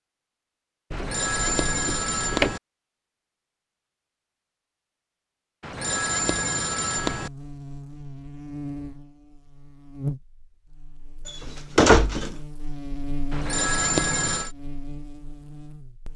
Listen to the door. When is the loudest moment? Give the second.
12 s.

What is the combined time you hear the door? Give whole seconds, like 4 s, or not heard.
3 s.